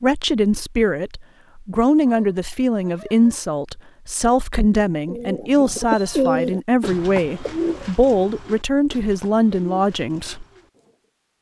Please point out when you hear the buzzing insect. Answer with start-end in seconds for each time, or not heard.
not heard.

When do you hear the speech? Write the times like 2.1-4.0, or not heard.
0.0-10.4.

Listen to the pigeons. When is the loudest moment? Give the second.
6 s.